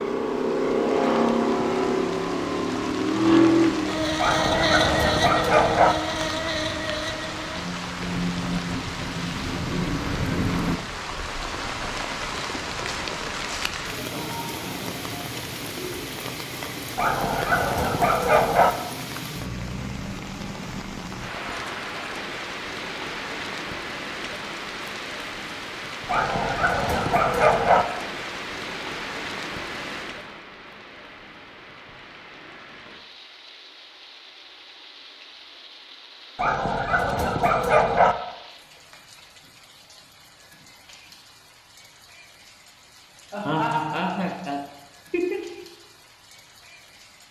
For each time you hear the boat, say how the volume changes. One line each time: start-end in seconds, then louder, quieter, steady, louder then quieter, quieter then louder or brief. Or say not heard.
0.0-10.8 quieter.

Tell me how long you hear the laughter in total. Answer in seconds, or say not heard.
4 s.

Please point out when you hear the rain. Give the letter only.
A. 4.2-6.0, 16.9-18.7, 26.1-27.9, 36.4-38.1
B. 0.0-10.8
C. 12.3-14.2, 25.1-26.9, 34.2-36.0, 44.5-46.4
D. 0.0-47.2
D.